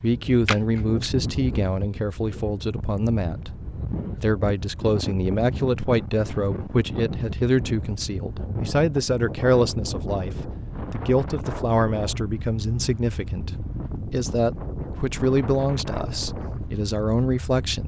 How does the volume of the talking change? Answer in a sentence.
The loudness of the talking stays about the same.